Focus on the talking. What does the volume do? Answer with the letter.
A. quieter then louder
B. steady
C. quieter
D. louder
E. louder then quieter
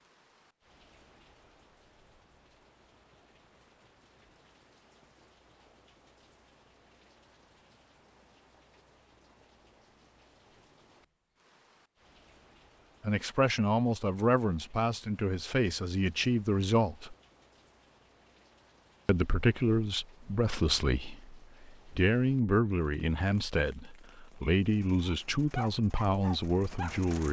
B.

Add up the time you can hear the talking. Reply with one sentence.
You can hear the talking for 12 seconds altogether.